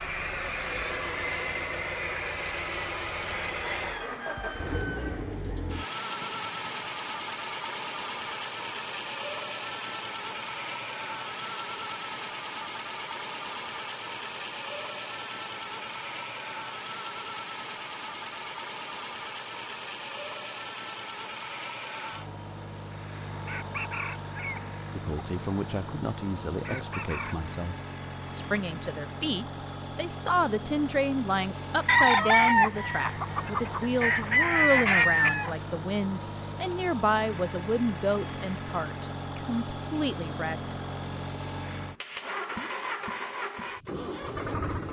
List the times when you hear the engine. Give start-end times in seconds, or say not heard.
0.0-44.8.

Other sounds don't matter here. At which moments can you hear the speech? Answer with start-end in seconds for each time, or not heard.
24.9-40.8.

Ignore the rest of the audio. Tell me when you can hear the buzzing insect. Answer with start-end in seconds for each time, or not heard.
not heard.